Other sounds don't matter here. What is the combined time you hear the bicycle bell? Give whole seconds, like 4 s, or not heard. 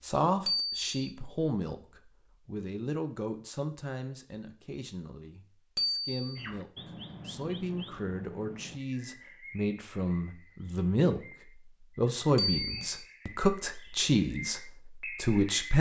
2 s.